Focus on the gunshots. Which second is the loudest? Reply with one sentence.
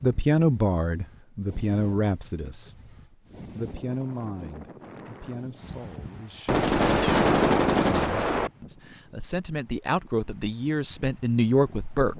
The volume of the gunshots peaks at 7 seconds.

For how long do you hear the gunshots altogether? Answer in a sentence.
You can hear the gunshots for 2 seconds altogether.